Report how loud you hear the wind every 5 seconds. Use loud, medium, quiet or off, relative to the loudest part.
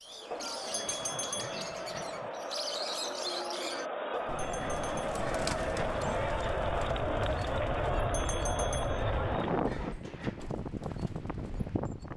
off, loud, loud.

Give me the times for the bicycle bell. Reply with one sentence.
The bicycle bell can be heard from 0.7 to 1.5 s, from 4.3 to 5.1 s and from 8.1 to 9.1 s.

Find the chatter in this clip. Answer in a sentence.
You can hear the chatter from 0.0 to 9.7 s.